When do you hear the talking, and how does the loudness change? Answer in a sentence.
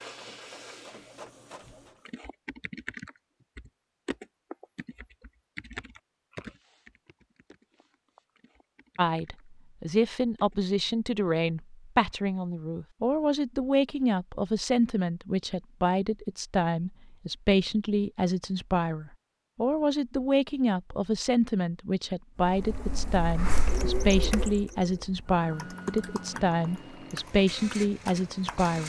You can hear the talking from 8.9 to 28.8 s, at a steady volume.